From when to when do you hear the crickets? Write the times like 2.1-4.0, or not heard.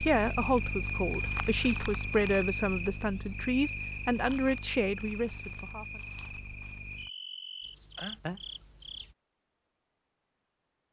0.0-9.2.